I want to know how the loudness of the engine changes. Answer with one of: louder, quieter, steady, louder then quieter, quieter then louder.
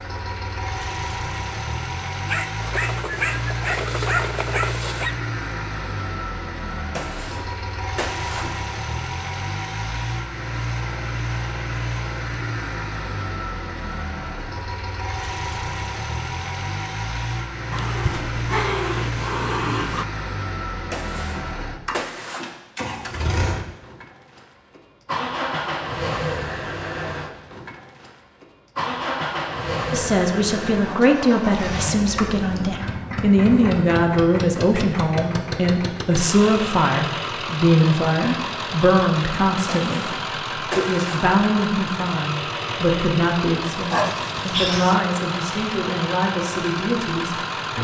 steady.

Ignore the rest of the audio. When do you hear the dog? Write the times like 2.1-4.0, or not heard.
2.2-5.2, 17.7-20.1, 43.9-45.0.